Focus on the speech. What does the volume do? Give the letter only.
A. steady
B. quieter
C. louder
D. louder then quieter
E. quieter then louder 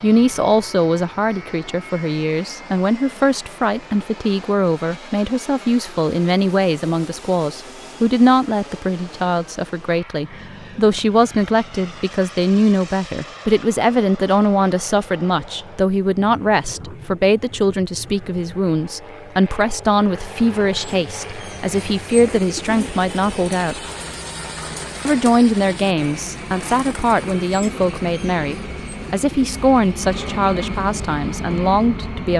A.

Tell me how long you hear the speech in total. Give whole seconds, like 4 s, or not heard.
31 s.